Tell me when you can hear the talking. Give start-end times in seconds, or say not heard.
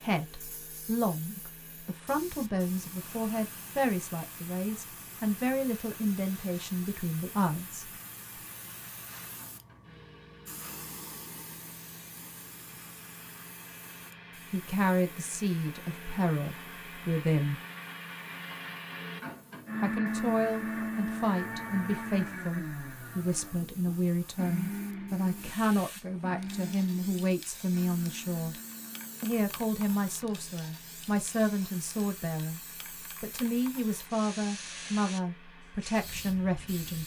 0.0-7.9, 14.5-17.6, 19.8-28.6, 29.2-32.6, 33.2-37.0.